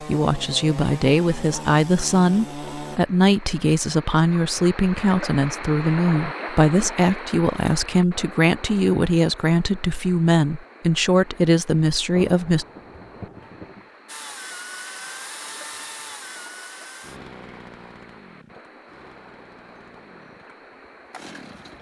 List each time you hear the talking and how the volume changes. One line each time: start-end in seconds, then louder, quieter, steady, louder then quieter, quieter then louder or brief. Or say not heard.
0.0-12.7 steady.